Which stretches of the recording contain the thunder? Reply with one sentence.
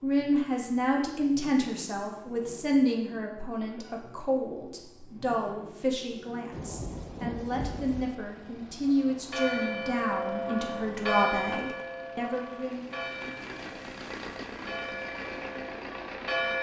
You can hear the thunder from 6.5 to 8.2 s.